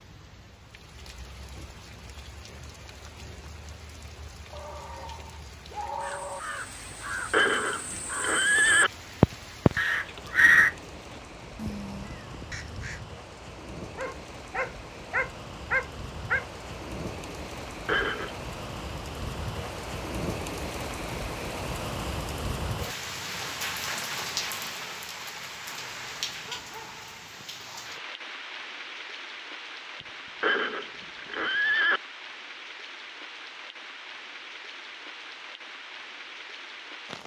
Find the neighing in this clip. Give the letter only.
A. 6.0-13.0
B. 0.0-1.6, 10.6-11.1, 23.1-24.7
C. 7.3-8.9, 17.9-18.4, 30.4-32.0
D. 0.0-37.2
C.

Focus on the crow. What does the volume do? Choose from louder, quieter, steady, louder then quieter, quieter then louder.
louder then quieter.